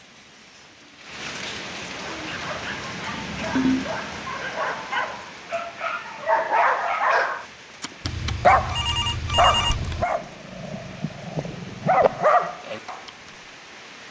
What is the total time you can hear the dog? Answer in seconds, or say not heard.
11 s.